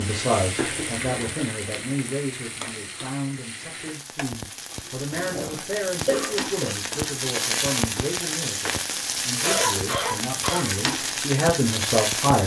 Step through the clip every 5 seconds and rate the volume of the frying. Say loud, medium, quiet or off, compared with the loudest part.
medium, loud, loud.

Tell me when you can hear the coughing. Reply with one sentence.
The coughing can be heard from 0.6 to 1.2 s, from 5.1 to 6.8 s and from 9.2 to 10.8 s.